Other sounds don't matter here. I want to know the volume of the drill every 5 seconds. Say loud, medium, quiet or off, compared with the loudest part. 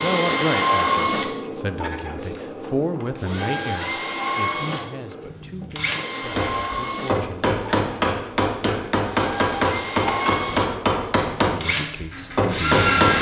loud, medium, loud.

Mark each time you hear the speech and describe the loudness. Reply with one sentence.
The speech can be heard from 0.0 to 7.5 s, getting quieter; and briefly from 11.5 to 13.1 s.